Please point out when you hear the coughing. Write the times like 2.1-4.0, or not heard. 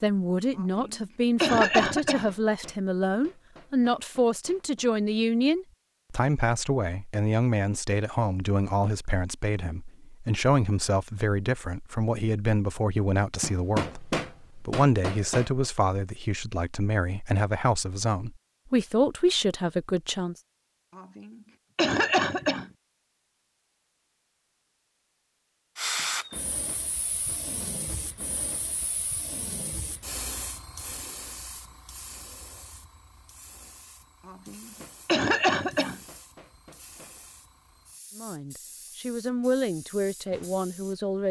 0.6-2.3, 20.9-22.7, 34.2-36.0.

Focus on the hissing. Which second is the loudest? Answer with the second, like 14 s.
26 s.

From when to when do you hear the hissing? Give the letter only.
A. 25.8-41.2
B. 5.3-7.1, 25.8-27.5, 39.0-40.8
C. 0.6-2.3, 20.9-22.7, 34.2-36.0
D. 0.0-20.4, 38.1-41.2
A.